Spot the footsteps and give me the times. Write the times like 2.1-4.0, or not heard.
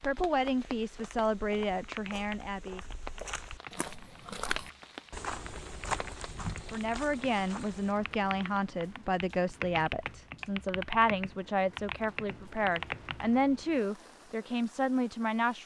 0.3-8.0.